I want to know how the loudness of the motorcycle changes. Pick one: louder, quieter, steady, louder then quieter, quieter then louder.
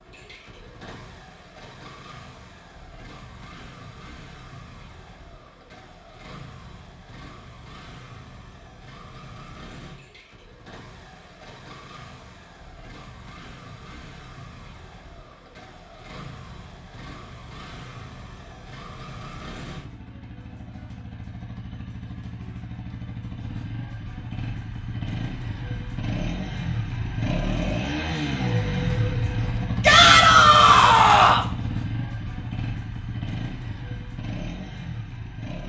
louder.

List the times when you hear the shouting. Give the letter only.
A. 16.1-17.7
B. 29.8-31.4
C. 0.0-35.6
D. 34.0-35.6
B.